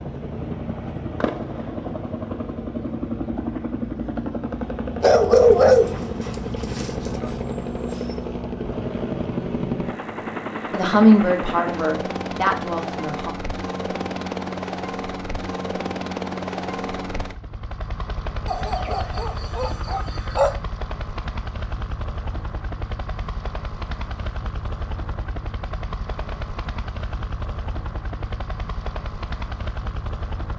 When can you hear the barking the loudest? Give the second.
6 s.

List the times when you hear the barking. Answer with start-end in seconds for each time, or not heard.
5.0-7.2, 18.4-20.6.